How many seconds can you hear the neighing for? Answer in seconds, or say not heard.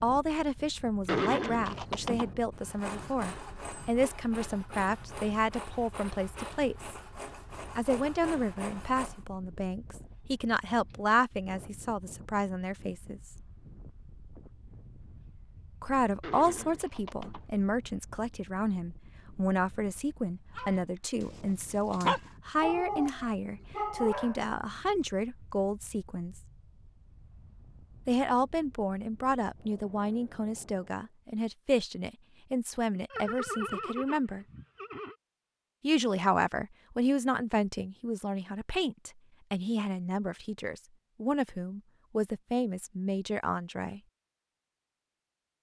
5 s.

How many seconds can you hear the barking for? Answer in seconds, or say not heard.
4 s.